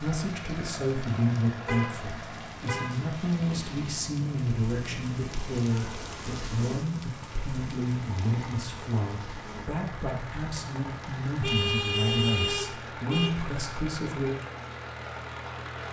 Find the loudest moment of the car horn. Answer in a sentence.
The loudest moment of the car horn is at 12 seconds.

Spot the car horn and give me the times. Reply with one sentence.
You can hear the car horn from 1.6 to 3.0 s and from 11.4 to 13.3 s.